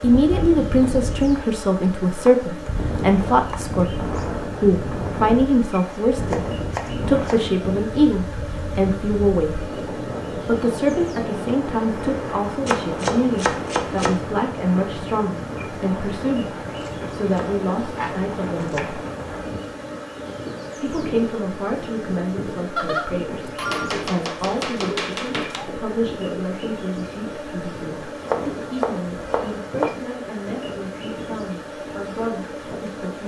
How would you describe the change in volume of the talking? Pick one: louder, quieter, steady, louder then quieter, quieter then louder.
quieter.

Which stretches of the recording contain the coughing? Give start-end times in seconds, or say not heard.
not heard.